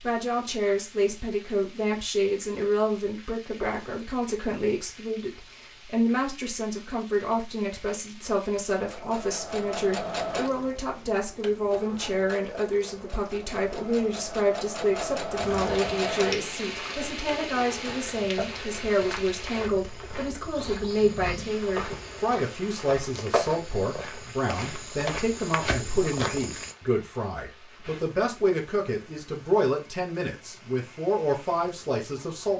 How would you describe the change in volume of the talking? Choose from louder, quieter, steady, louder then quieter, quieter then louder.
steady.